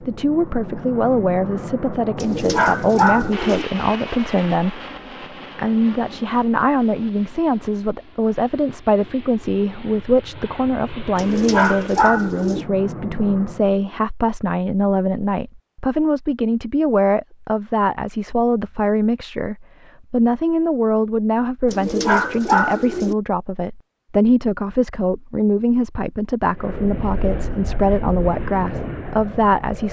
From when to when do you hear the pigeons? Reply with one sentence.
You can hear the pigeons from 2.1 to 3.6 s, from 11.2 to 12.7 s and from 21.6 to 23.1 s.